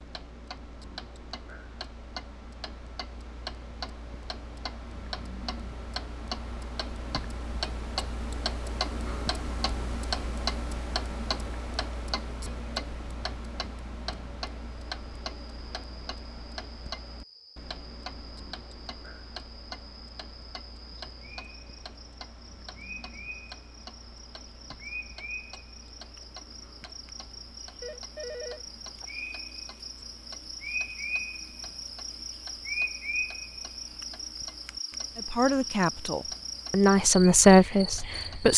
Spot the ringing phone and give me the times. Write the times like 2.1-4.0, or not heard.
27.8-29.1.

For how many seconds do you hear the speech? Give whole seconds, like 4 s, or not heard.
3 s.